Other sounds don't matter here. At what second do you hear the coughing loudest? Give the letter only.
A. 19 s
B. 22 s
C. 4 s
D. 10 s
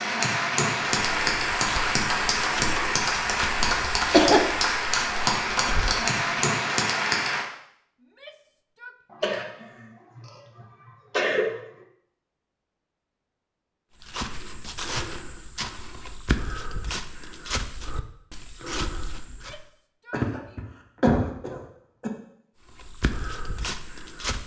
C.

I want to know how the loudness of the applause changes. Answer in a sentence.
The volume of the applause stays about the same.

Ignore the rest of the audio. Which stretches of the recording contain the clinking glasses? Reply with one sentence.
You can't hear the clinking glasses here.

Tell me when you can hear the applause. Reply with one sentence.
The applause can be heard from 0.0 to 7.5 s.